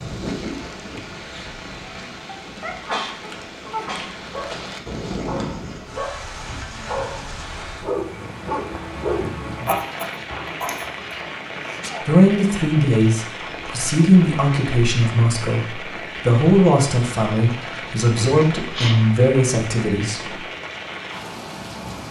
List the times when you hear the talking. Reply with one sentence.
You can hear the talking from 12.0 to 20.4 s.